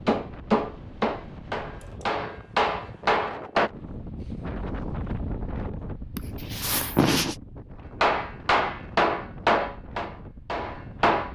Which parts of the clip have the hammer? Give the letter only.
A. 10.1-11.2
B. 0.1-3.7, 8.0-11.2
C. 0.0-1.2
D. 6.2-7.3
B.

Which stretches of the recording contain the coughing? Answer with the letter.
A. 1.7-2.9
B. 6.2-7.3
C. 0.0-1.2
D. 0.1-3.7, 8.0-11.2
B.